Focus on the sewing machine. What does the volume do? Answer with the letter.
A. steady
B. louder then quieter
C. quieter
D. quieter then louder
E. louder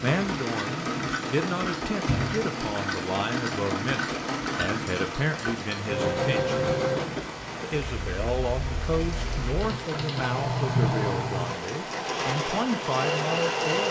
A.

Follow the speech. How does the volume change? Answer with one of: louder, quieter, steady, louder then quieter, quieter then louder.
steady.